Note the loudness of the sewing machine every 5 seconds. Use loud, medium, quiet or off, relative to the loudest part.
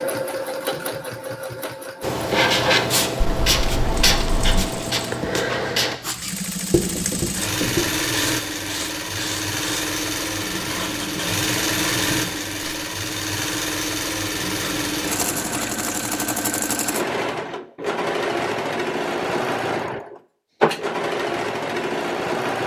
medium, loud, loud, loud, loud.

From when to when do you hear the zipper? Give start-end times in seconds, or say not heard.
3.2-4.7, 14.3-15.8.